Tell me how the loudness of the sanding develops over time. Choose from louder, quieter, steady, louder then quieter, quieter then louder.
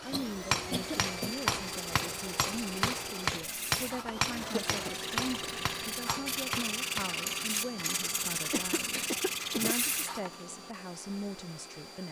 louder.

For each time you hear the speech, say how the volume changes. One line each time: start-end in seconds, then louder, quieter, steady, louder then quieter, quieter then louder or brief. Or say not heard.
0.0-12.0 steady.